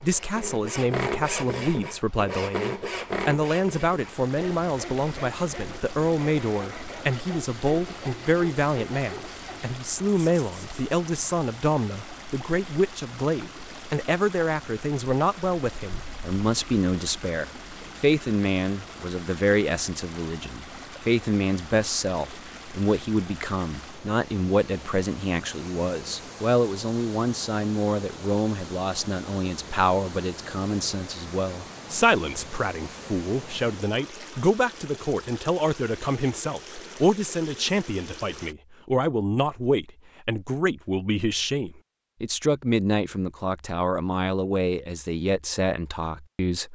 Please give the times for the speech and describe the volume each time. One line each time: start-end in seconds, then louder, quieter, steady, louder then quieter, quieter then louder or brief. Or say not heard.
0.0-46.7 steady.